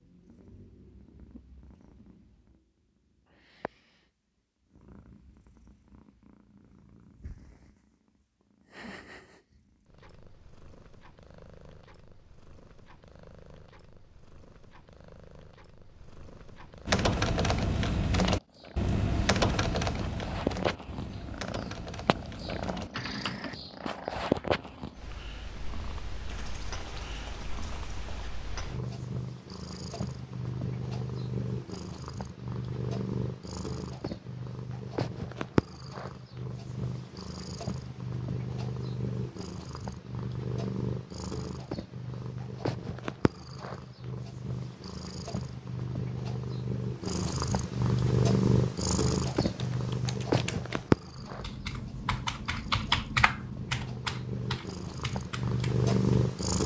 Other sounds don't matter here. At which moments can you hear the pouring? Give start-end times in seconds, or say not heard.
26.2-28.3.